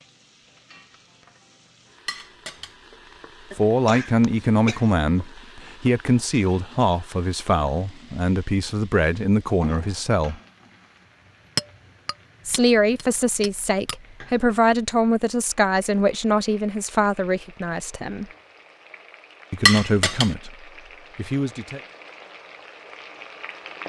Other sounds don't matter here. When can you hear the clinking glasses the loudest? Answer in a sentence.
The volume of the clinking glasses peaks at 20 seconds.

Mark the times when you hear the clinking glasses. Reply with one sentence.
The clinking glasses can be heard from 2.0 to 2.8 s, from 11.6 to 13.9 s and from 19.6 to 20.4 s.